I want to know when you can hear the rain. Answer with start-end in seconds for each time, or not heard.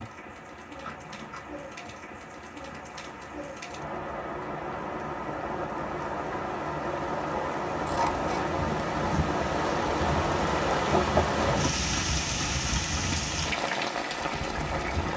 0.0-15.1.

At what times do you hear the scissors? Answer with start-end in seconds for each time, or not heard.
0.8-1.4, 7.8-8.4.